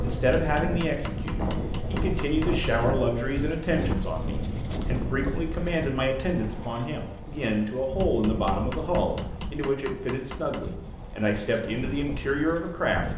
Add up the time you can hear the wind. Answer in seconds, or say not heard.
13 s.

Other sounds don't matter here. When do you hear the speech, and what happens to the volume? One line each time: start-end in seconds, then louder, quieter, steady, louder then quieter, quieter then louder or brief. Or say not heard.
0.0-13.1 steady.